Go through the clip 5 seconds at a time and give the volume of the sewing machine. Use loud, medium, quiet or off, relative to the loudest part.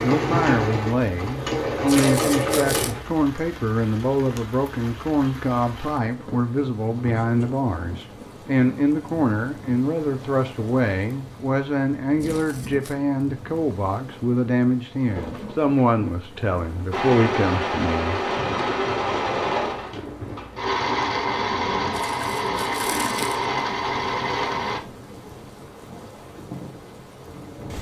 loud, off, off, loud, loud, off.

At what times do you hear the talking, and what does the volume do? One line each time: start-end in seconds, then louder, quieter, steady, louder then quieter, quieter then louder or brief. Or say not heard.
0.0-18.2 steady.